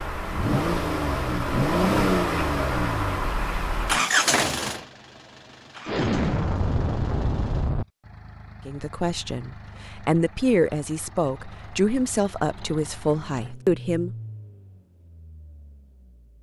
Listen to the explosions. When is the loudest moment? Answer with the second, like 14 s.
6 s.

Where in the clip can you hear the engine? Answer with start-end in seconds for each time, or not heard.
0.0-16.3.